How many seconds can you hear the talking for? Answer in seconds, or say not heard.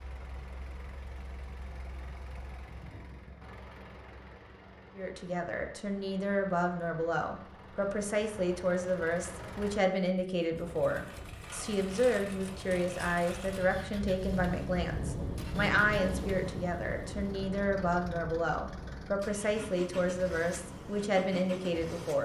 17 s.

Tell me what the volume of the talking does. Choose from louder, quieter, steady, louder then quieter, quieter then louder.
steady.